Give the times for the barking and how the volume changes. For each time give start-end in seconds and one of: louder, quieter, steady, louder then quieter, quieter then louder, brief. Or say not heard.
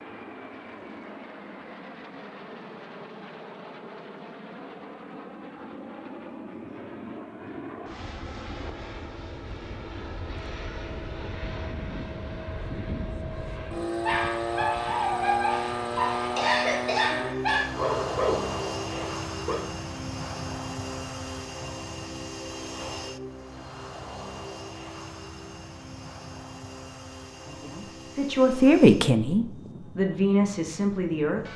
13.9-19.6 steady.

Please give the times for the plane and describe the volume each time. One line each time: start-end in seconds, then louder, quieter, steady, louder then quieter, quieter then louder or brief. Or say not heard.
0.0-31.5 louder then quieter.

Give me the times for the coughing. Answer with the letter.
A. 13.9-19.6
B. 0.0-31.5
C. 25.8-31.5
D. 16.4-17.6
D.